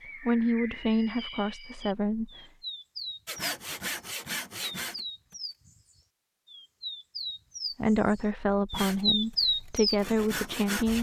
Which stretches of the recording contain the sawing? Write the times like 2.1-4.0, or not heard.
3.2-5.3, 8.7-10.9.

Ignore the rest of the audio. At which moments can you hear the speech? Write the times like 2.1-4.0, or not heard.
0.2-2.3, 7.8-10.9.